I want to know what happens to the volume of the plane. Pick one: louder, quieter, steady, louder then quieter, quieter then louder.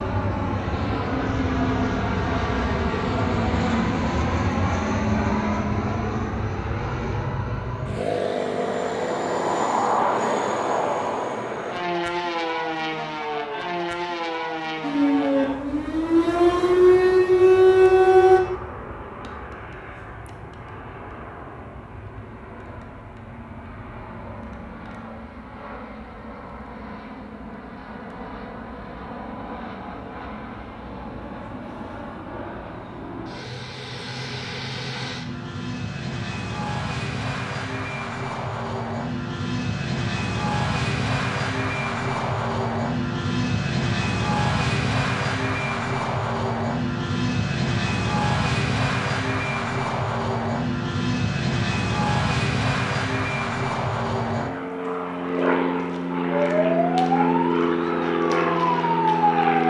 quieter then louder.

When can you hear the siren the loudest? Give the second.
18 s.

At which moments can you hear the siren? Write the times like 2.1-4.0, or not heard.
14.8-18.4, 56.3-59.5.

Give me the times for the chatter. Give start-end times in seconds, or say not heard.
not heard.